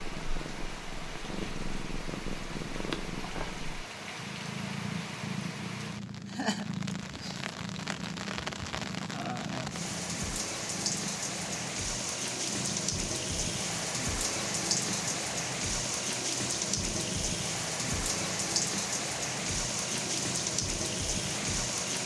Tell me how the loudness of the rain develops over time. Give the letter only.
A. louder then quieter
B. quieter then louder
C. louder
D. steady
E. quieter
C.